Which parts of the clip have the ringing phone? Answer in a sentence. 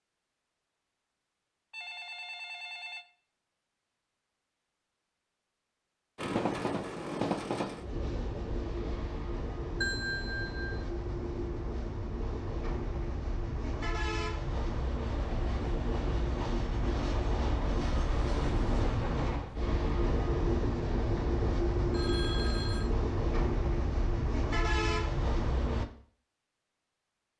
The ringing phone can be heard from 1.7 to 3.0 s, from 9.8 to 10.8 s and from 21.9 to 22.9 s.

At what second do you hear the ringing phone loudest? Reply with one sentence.
The loudest moment of the ringing phone is at 10 seconds.